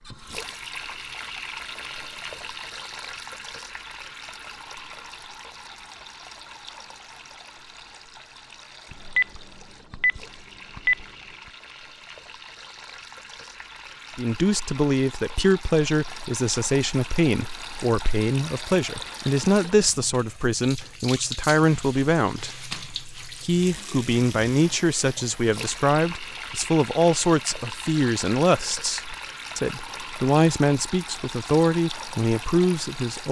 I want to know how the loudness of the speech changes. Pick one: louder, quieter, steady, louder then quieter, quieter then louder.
steady.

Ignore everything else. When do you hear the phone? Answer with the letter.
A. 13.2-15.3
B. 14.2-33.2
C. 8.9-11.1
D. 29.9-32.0
C.